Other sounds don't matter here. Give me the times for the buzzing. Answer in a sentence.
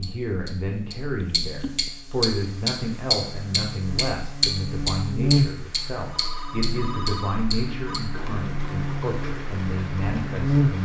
You can hear the buzzing from 0.0 to 10.7 s.